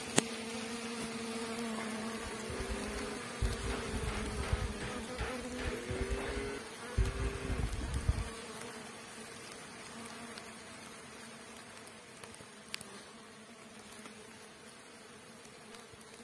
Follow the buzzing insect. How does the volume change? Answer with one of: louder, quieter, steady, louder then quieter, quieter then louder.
quieter.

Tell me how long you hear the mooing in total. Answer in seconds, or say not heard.
6 s.